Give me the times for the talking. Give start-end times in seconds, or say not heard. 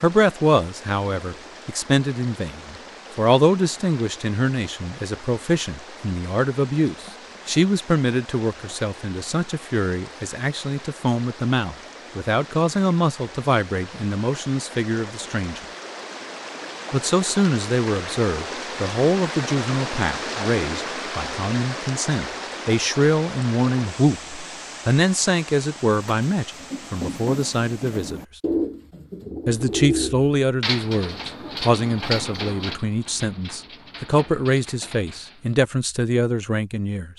0.0-15.6, 16.9-28.2, 29.4-37.1.